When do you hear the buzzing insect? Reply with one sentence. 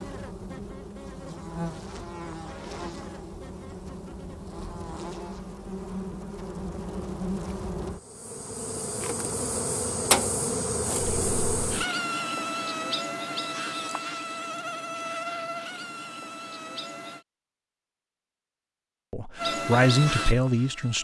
The buzzing insect can be heard from 0.0 to 17.2 s and from 19.4 to 20.9 s.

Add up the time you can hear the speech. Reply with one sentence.
The speech can be heard for 2 seconds in total.